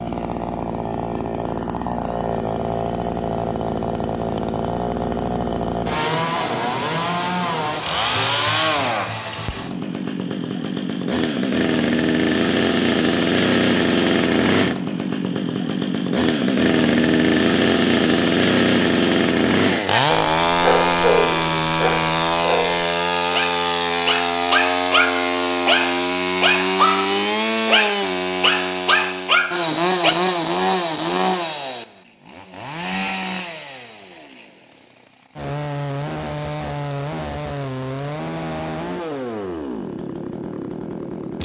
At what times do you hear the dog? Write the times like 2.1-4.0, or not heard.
19.9-30.1.